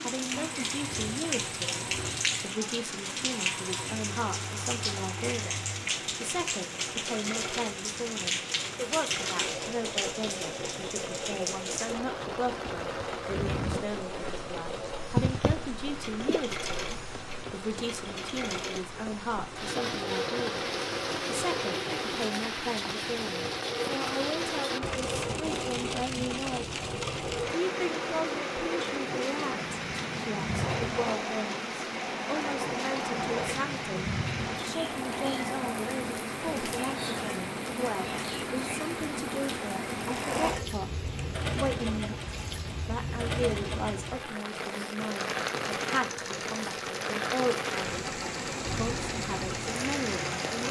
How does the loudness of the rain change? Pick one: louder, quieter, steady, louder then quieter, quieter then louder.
steady.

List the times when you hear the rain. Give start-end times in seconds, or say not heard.
0.0-50.6.